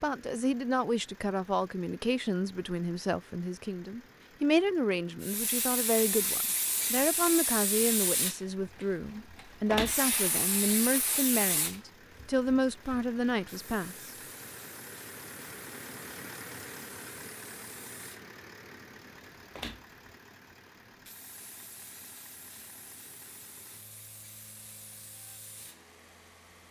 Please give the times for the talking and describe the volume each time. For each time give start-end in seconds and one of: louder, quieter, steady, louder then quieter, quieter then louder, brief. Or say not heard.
0.0-14.1 steady.